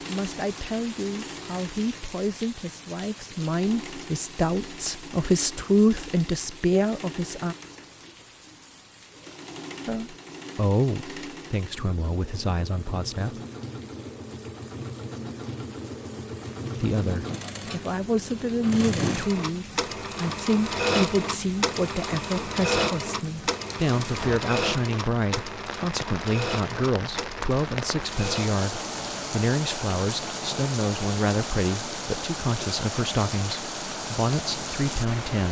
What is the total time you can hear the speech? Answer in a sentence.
You can hear the speech for 30 seconds altogether.